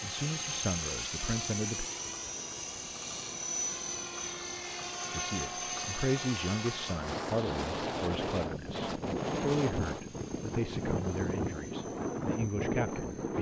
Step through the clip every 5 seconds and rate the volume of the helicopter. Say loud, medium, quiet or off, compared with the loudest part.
loud, loud, quiet.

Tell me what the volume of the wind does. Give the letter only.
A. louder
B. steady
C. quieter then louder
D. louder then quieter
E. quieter
A.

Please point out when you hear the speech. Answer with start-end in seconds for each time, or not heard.
0.0-1.9, 5.1-13.3.